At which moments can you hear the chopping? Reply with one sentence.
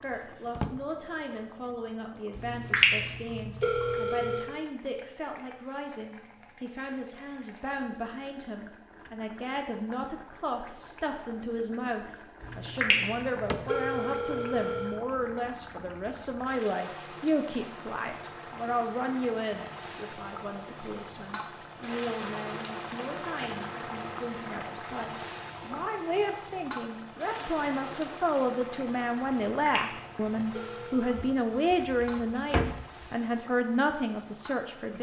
The chopping can't be heard in this clip.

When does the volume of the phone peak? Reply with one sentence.
The volume of the phone peaks at 3 seconds.